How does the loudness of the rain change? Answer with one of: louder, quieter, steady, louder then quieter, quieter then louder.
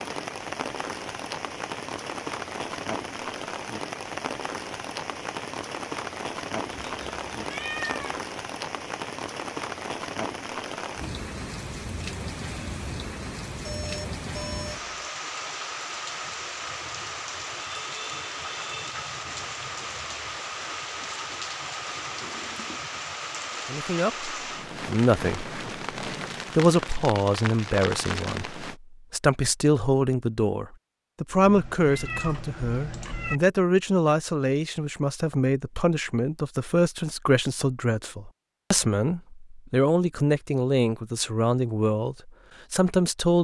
steady.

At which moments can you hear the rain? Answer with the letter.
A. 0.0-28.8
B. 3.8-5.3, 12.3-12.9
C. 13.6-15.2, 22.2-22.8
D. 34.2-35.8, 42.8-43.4
A.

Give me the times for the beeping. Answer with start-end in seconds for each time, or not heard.
13.6-15.2, 22.2-22.8.